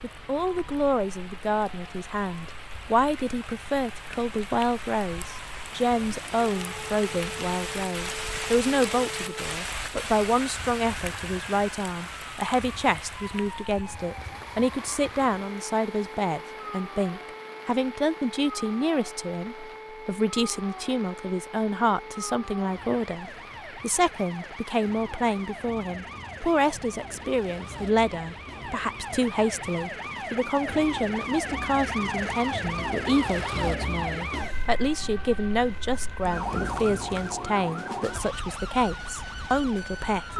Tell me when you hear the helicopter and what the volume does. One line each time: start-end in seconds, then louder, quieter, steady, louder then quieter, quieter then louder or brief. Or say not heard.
not heard.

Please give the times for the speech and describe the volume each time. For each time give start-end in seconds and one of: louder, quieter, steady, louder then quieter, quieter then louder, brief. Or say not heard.
0.0-40.3 steady.